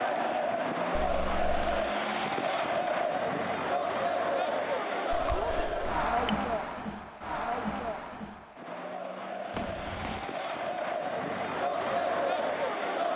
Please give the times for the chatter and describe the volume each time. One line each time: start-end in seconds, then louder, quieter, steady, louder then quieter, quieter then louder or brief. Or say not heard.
0.0-13.1 quieter then louder.